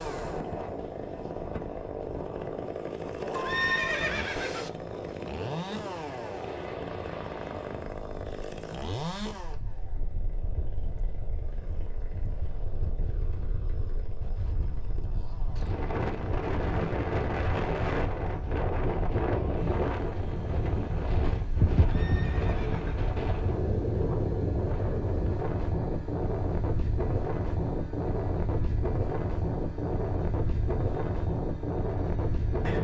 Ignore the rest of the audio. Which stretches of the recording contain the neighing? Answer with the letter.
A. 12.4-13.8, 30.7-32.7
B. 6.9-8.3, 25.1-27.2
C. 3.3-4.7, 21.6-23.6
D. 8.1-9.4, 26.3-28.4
C.